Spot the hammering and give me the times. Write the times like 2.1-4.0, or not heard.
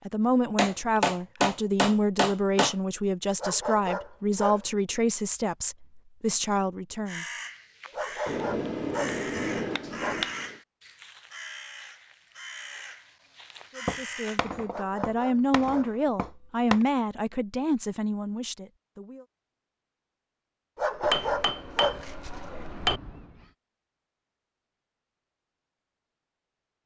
0.6-2.8, 8.2-10.6, 13.8-16.9, 21.0-23.0.